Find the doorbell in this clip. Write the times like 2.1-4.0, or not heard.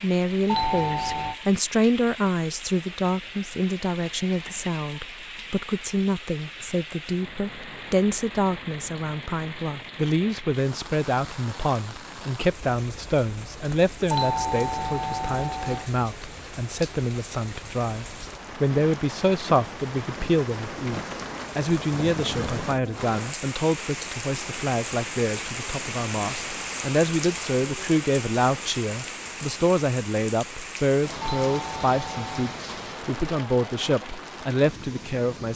0.5-1.4, 14.1-15.9, 31.2-32.5.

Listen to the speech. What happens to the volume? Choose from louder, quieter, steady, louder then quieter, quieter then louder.
steady.